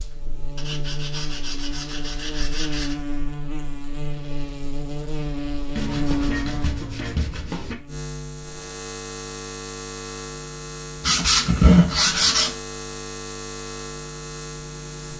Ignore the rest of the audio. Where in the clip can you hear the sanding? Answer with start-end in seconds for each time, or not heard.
0.6-3.0, 5.8-7.8, 11.0-12.5.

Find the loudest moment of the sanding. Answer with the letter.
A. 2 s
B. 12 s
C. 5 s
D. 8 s
B.